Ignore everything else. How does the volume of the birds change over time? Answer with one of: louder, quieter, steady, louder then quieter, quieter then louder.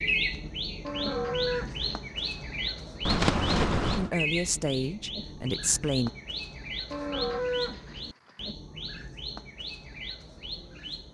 quieter.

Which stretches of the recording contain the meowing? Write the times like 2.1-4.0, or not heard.
3.0-4.1.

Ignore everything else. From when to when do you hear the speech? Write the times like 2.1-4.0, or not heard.
4.0-6.1.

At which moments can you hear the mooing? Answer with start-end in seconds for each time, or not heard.
0.8-2.4, 6.9-8.4.